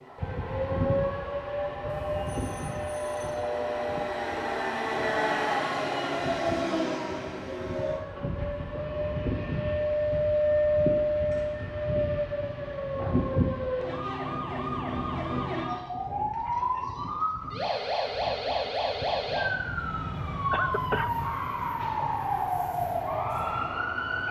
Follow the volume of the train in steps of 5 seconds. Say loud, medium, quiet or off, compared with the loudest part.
medium, loud, quiet, quiet, quiet.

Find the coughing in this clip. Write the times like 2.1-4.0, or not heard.
20.5-21.1.